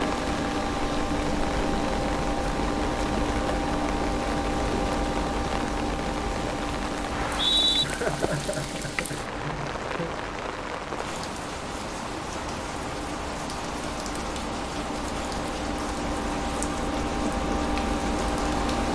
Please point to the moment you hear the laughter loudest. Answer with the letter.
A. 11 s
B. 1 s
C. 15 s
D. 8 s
D.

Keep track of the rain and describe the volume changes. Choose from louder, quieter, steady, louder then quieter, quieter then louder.
steady.